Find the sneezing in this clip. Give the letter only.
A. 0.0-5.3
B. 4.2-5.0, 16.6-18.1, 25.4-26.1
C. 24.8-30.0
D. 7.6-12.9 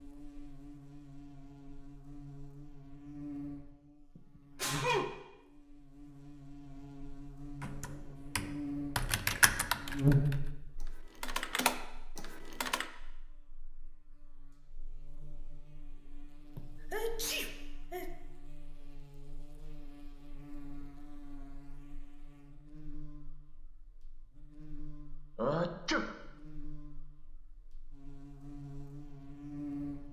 B.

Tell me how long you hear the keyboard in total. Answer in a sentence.
You can hear the keyboard for 5 seconds altogether.